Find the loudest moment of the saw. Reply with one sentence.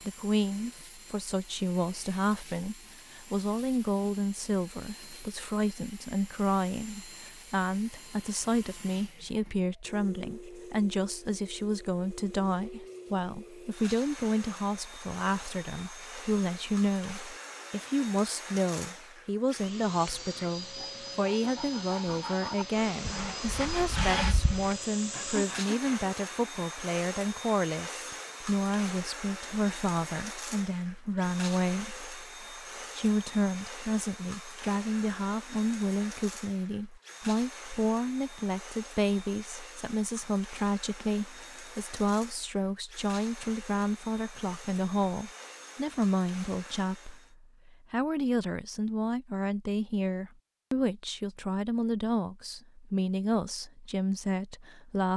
The volume of the saw peaks at 24 seconds.